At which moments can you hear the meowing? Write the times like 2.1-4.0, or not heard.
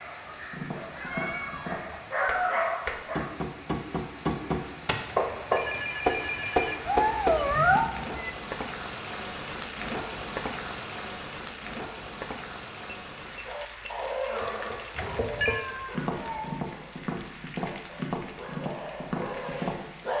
0.9-1.8, 6.8-8.3, 15.4-16.6.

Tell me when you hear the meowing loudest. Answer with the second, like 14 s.
8 s.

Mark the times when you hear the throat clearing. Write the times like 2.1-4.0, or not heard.
not heard.